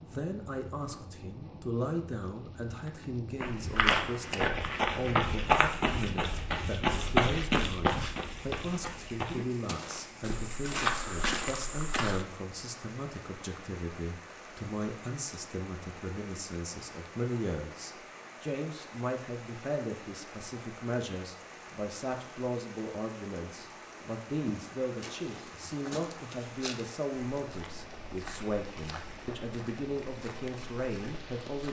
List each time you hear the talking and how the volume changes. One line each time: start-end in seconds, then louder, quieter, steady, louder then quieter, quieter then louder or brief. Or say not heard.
0.1-31.6 steady.